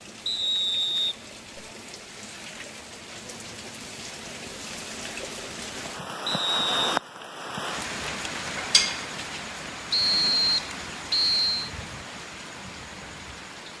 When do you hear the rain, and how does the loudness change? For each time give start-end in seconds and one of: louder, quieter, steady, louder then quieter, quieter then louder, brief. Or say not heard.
0.0-13.7 louder then quieter.